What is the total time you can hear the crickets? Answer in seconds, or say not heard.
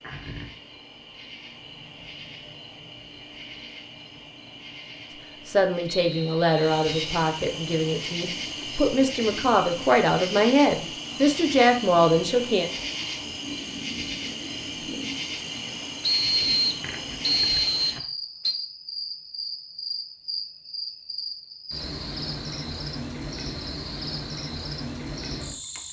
26 s.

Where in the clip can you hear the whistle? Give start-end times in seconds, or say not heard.
5.8-7.1, 16.0-18.6.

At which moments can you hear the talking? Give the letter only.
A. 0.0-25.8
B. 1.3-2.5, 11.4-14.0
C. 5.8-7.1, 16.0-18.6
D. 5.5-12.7
D.